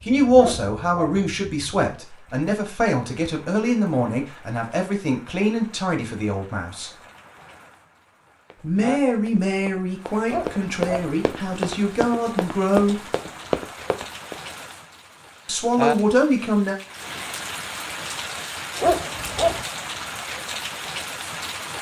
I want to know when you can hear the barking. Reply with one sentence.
You can hear the barking from 0.3 to 1.2 s, from 10.2 to 11.1 s and from 18.8 to 19.6 s.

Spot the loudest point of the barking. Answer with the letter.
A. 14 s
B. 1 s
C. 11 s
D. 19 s
D.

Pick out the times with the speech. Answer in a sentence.
You can hear the speech from 0.1 to 6.9 s, from 8.6 to 13.0 s and from 15.4 to 16.8 s.